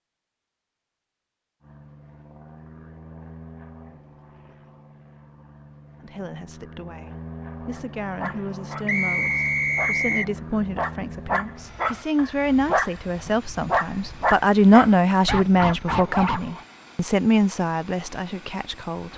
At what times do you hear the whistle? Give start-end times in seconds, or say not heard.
8.8-10.3.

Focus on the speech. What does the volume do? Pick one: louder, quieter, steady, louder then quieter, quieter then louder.
louder then quieter.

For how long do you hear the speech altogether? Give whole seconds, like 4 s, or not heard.
13 s.